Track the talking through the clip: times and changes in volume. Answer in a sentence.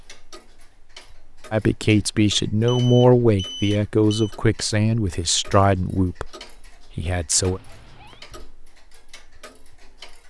The talking can be heard from 1.5 to 7.6 s, getting quieter.